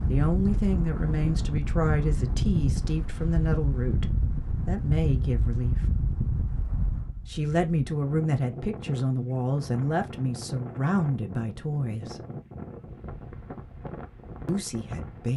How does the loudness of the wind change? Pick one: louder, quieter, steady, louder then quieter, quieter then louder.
quieter.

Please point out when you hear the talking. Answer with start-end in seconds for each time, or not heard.
0.1-5.8, 7.2-12.2, 14.4-15.3.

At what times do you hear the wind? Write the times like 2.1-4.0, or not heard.
0.0-15.3.